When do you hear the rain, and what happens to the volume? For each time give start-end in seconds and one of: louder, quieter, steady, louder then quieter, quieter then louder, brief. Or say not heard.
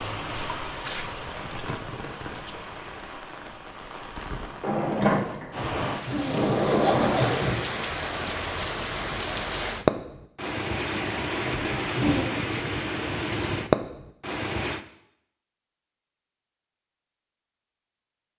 0.0-14.8 louder.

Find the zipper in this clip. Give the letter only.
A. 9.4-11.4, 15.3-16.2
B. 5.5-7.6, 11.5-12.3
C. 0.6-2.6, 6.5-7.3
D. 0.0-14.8
B.